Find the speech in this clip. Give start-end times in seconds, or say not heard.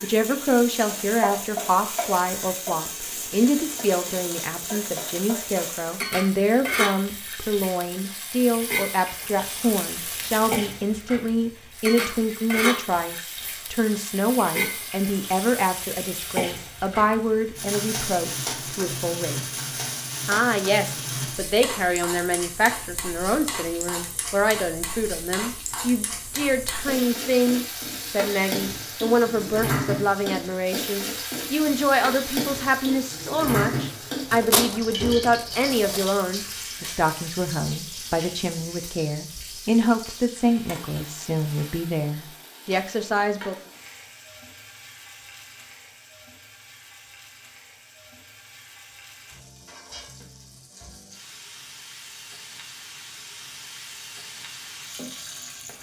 0.0-19.6, 20.2-43.5.